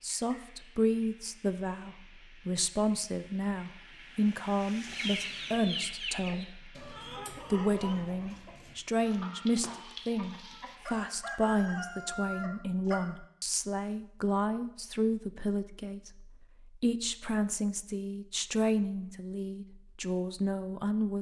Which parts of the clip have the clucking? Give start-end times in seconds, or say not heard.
4.8-13.0.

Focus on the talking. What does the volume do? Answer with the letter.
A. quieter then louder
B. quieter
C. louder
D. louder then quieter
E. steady
E.